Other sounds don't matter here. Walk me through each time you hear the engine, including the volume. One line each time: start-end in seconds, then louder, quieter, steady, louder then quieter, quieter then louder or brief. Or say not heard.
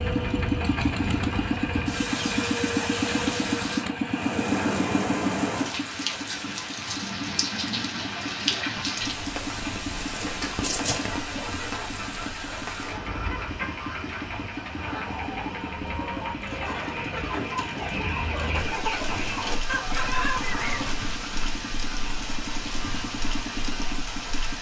0.0-24.5 quieter.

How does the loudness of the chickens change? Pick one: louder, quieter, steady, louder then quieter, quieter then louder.
louder.